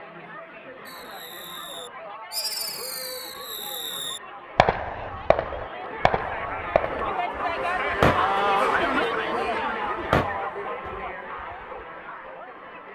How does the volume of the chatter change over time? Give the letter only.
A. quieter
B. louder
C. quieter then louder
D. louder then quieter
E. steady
D.